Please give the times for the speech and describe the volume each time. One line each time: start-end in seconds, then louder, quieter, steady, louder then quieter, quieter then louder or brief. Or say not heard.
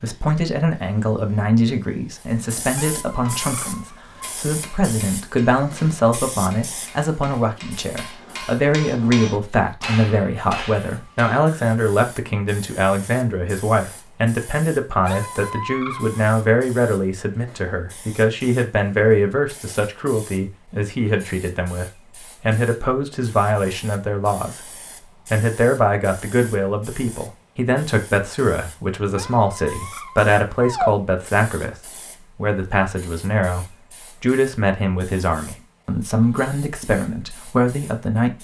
0.0-38.3 steady.